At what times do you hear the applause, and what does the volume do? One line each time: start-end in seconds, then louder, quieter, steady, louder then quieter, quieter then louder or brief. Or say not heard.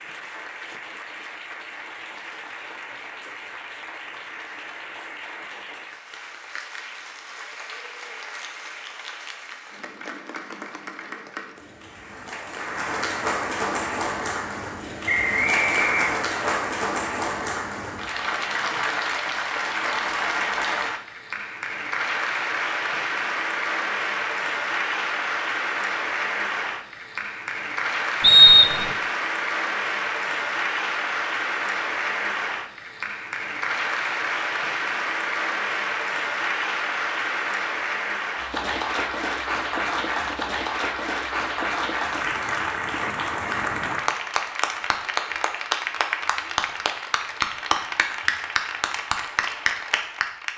0.0-50.5 louder.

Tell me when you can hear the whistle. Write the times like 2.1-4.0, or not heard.
15.1-16.4, 28.2-28.9.